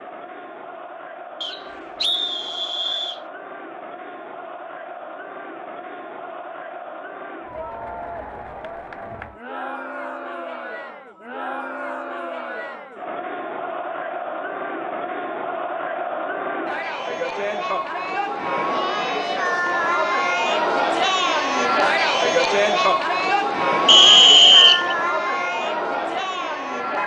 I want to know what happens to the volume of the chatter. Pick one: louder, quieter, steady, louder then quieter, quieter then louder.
louder.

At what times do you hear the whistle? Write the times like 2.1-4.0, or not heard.
1.4-3.2, 23.9-24.9.